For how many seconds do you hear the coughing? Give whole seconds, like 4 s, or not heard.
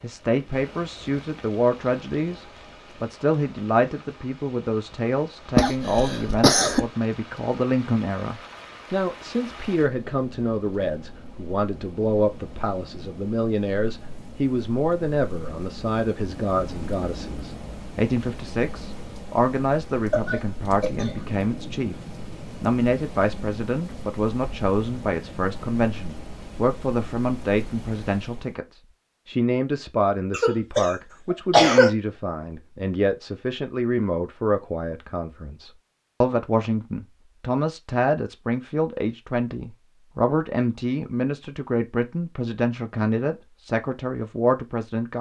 4 s.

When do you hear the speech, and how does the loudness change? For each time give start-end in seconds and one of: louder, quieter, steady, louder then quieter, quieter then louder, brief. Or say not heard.
0.0-28.6 steady
29.2-45.1 steady.